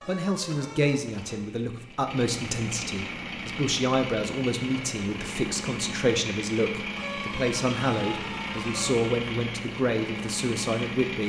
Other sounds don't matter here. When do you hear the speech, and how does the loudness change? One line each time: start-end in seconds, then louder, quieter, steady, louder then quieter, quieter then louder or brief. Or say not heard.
0.1-11.2 steady.